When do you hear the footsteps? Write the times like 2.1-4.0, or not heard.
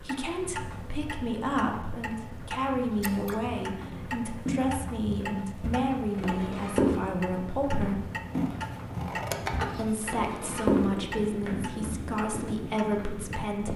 3.8-11.8.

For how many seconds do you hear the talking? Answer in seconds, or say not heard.
12 s.